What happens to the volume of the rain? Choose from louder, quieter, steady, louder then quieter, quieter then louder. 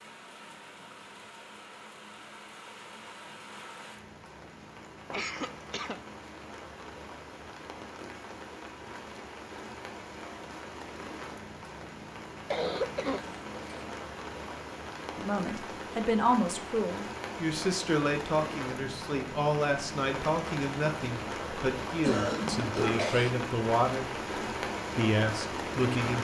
louder.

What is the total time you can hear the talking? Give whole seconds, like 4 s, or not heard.
10 s.